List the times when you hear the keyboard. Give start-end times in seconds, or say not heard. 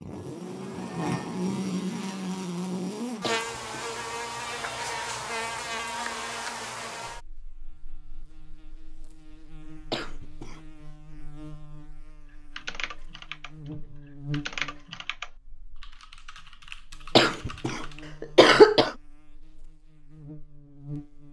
12.6-18.1.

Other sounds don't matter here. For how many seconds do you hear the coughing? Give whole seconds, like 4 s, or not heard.
3 s.